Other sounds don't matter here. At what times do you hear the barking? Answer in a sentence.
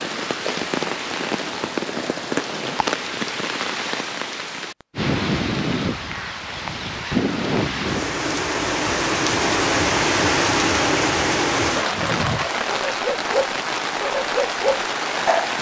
You can hear the barking from 11.7 to 15.5 s.